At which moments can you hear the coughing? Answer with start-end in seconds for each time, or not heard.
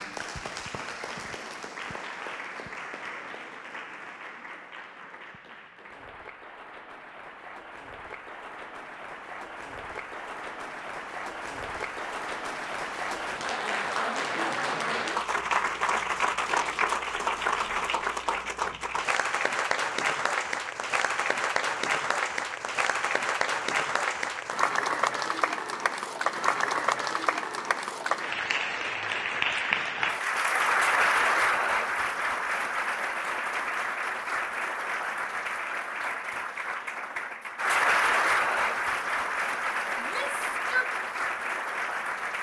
not heard.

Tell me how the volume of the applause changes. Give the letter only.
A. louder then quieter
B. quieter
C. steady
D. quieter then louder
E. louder
E.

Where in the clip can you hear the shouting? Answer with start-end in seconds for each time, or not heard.
40.0-40.9.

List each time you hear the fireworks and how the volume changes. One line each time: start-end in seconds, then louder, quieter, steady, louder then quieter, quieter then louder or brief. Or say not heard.
not heard.